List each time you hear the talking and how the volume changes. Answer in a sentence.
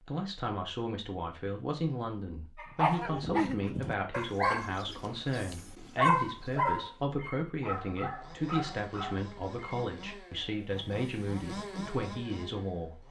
The talking can be heard from 0.1 to 13.0 s, at a steady volume.